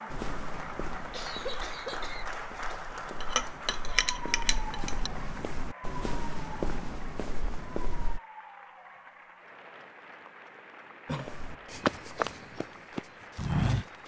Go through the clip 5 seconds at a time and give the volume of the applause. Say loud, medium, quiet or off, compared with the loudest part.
loud, medium, medium.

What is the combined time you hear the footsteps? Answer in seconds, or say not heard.
11 s.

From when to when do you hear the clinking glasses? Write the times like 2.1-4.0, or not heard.
3.2-5.1.